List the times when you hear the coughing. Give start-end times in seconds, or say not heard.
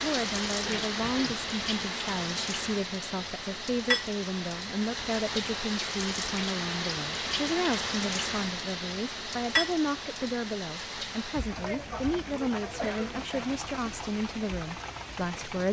0.7-1.4, 11.5-13.6.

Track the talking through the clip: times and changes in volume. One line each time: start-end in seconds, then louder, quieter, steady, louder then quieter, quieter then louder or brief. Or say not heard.
0.0-15.6 steady.